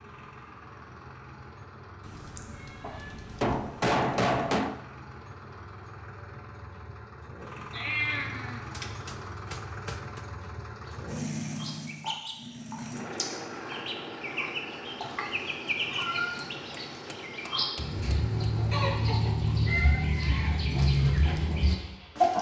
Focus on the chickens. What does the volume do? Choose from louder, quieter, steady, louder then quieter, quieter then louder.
louder.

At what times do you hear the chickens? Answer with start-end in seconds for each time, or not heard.
10.8-22.3.